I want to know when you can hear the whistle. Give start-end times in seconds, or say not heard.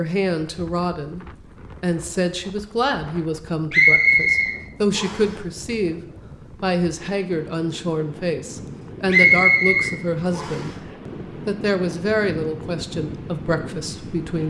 3.7-5.3, 9.1-10.7.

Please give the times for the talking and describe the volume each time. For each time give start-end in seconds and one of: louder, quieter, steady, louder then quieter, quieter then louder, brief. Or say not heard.
0.0-14.4 steady.